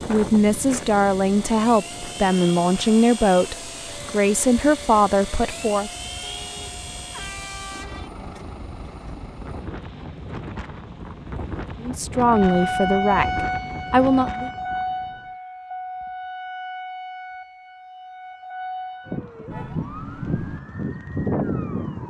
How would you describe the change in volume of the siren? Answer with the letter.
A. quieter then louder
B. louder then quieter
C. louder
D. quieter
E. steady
A.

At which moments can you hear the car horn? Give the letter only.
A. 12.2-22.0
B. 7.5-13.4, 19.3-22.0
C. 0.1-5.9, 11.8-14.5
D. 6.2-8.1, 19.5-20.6
D.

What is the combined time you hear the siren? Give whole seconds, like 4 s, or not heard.
10 s.